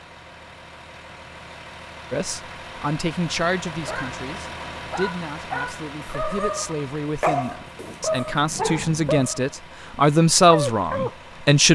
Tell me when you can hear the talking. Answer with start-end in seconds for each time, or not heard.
2.1-11.6.